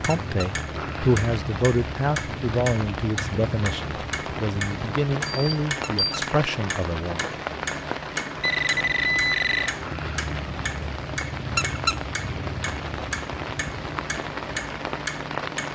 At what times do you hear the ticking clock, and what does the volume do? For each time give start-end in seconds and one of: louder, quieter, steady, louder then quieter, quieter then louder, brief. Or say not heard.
0.0-15.6 steady.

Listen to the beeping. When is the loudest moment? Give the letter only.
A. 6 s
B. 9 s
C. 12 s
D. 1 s
B.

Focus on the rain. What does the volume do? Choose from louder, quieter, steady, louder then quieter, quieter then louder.
steady.